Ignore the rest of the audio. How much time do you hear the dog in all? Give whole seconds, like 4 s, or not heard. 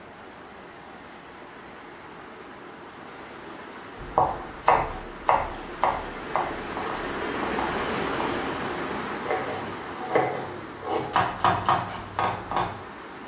not heard.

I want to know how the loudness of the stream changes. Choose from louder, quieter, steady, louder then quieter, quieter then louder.
louder then quieter.